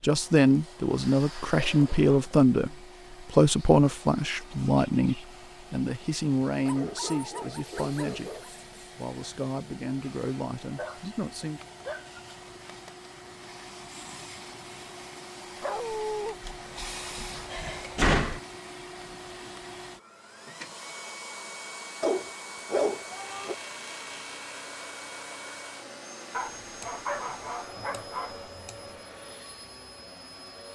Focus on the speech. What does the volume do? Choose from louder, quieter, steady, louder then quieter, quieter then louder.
quieter.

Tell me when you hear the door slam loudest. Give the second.
18 s.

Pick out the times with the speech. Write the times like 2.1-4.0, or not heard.
0.0-11.6.